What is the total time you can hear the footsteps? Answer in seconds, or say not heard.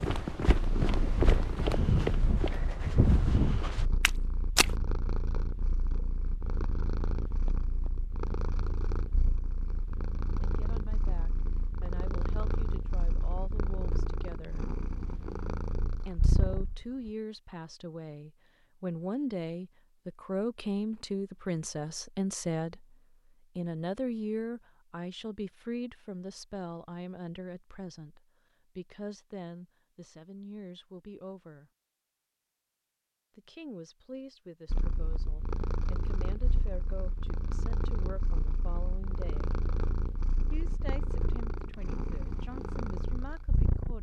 5 s.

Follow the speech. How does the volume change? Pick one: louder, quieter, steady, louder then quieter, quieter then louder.
louder then quieter.